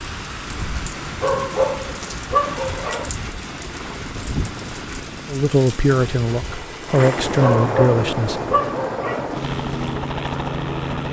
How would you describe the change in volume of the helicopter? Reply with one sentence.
The loudness of the helicopter goes up.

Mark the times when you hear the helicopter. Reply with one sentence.
You can hear the helicopter from 0.1 to 11.0 s.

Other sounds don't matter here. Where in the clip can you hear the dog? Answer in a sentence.
The dog can be heard from 1.2 to 3.1 s and from 7.3 to 9.3 s.